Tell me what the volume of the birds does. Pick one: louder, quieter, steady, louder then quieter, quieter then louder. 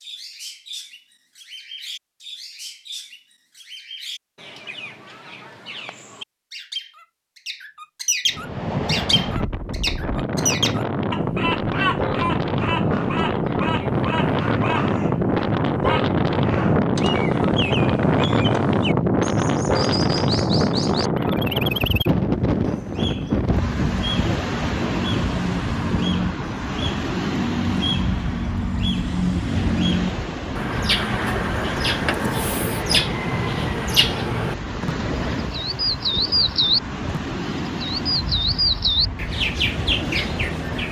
louder.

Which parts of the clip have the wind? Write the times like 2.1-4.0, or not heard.
8.2-40.8.